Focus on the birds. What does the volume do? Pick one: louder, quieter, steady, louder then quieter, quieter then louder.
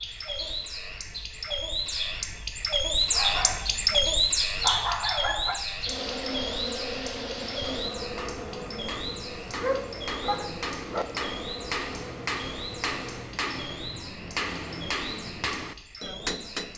quieter.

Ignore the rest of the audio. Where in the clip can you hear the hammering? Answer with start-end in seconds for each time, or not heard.
7.7-16.7.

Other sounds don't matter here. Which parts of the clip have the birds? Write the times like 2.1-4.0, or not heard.
0.0-16.7.